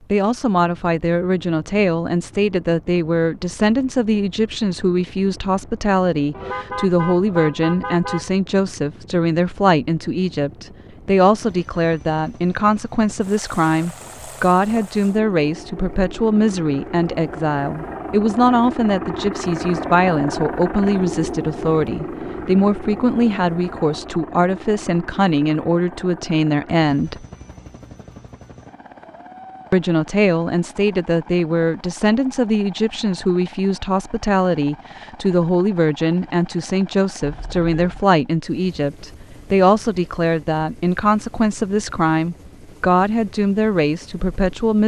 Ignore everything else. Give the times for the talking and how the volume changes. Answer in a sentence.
The talking can be heard from 0.1 to 27.2 s, at a steady volume; and from 29.7 to 44.8 s, at a steady volume.